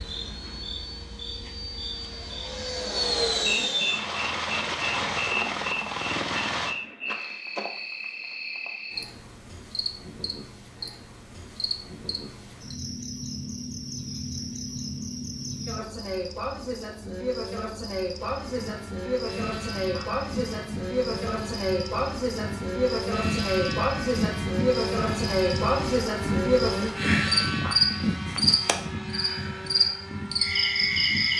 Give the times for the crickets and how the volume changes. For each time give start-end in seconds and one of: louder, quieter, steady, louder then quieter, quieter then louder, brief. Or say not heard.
0.0-31.3 louder.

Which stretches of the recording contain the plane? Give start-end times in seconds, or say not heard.
0.0-6.8, 18.1-31.3.